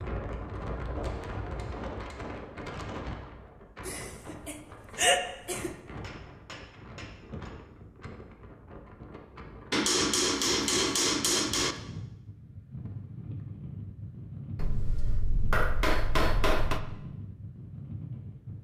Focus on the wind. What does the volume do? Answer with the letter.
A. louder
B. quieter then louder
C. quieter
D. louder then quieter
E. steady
B.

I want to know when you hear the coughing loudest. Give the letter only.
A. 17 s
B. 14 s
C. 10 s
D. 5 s
D.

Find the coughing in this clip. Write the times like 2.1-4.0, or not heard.
3.9-5.8.